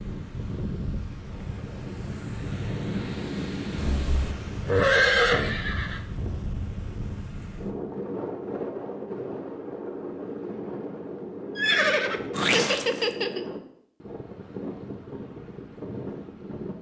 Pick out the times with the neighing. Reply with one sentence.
You can hear the neighing from 3.8 to 6.0 s and from 11.6 to 13.4 s.